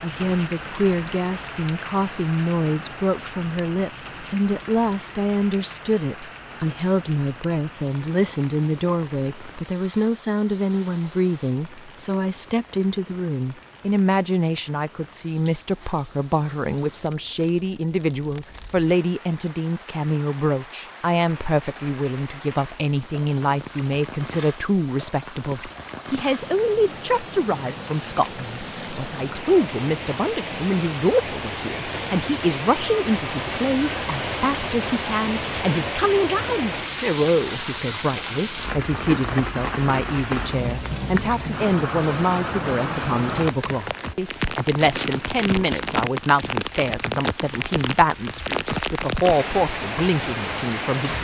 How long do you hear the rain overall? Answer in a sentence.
The rain can be heard for 51 seconds in total.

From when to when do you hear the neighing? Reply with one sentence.
You can't hear the neighing here.